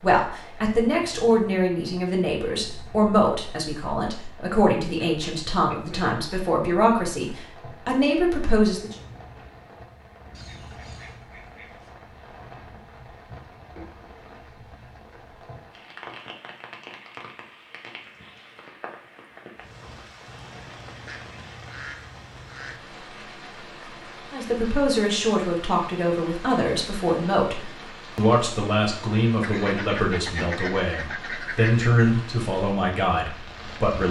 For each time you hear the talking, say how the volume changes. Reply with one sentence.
You can hear the talking from 0.0 to 8.9 s, at a steady volume; and from 24.3 to 34.0 s, at a steady volume.